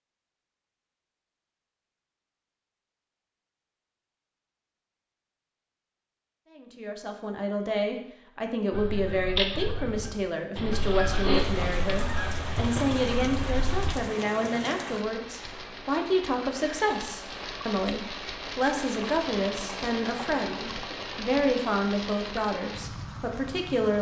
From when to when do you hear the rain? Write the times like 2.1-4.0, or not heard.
11.3-23.9.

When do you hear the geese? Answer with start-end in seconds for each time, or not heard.
8.7-13.9.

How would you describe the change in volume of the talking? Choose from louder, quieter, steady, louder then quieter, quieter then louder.
steady.